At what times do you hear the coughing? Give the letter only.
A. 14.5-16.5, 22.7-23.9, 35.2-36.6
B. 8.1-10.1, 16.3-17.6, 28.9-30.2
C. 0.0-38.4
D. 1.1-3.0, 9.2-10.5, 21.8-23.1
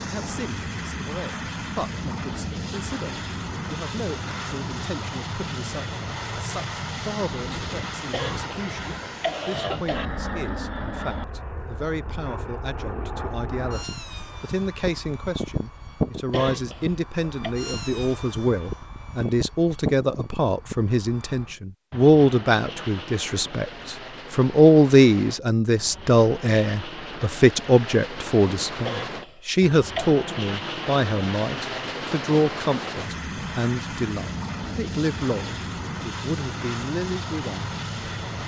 B.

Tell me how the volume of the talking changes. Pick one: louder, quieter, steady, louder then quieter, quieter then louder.
louder then quieter.